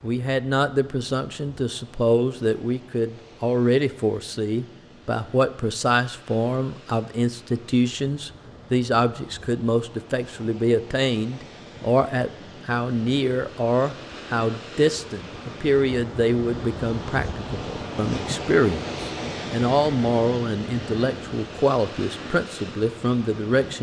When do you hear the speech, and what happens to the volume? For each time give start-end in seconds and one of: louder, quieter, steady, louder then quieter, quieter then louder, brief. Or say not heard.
0.0-23.7 steady.